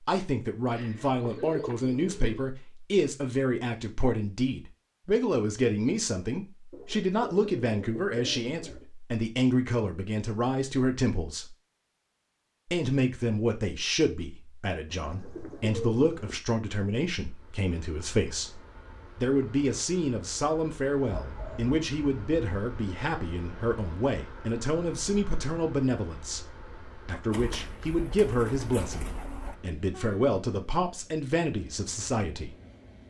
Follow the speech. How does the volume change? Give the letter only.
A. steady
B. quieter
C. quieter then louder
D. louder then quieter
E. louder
A.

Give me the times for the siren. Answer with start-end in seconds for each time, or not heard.
not heard.